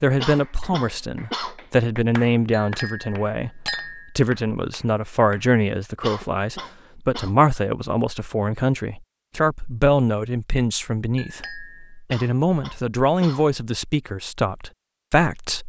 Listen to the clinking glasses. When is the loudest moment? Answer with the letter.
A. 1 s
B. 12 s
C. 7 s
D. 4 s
D.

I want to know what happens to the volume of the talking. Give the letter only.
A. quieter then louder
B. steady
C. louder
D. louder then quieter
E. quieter
B.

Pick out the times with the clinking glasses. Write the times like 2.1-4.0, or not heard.
2.5-4.1, 11.2-11.9.